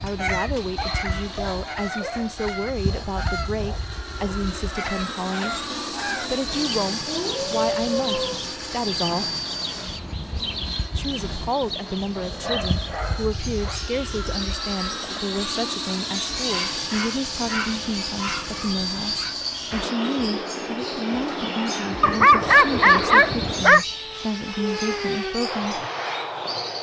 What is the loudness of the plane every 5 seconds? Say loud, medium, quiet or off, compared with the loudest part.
medium, loud, medium, loud, loud, loud.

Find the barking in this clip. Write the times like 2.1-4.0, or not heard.
0.0-2.4, 5.9-8.4, 12.2-13.8, 16.4-19.4, 22.0-23.9.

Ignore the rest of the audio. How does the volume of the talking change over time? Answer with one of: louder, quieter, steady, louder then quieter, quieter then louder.
steady.